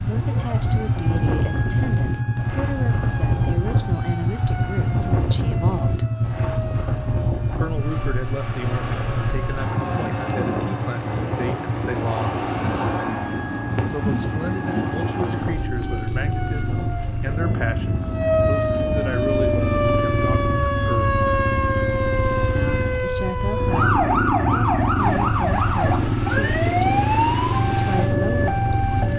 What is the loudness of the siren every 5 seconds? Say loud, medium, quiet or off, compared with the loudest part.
quiet, quiet, quiet, loud, loud, loud.